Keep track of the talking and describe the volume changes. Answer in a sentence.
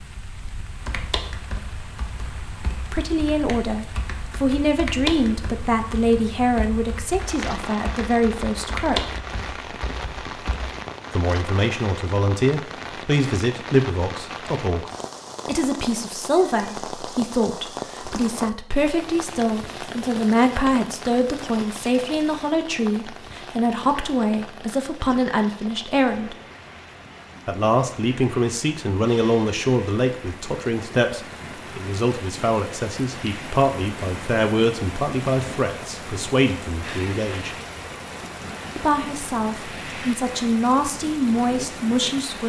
The loudness of the talking stays about the same.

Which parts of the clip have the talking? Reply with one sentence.
You can hear the talking from 2.9 to 9.2 s, from 11.2 to 26.4 s, from 27.4 to 37.5 s and from 38.8 to 42.4 s.